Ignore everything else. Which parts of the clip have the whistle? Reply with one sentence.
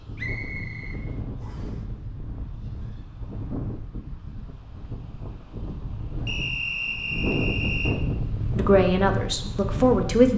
The whistle can be heard from 0.1 to 1.7 s and from 6.2 to 8.0 s.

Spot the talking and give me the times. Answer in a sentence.
You can hear the talking from 8.6 to 10.3 s.